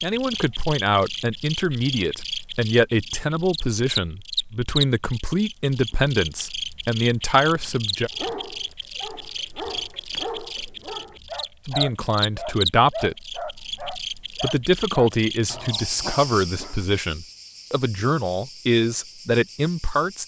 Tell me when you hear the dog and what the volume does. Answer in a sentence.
The dog can be heard from 8.1 to 16.9 s, getting louder then quieter.